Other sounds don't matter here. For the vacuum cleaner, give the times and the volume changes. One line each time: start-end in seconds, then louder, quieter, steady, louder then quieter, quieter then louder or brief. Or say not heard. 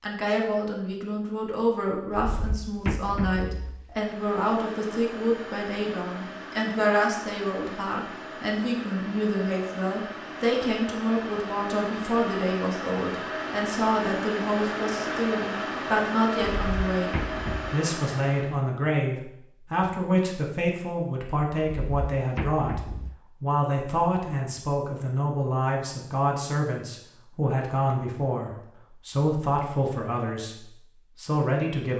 3.9-18.6 louder.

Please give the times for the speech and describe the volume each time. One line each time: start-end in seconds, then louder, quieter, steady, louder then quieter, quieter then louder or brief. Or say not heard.
0.0-17.1 steady
17.7-31.9 steady.